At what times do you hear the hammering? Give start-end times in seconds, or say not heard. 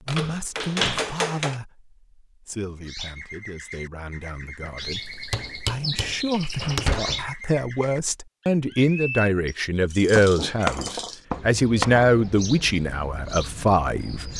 0.1-1.6, 4.8-6.9, 10.2-12.1.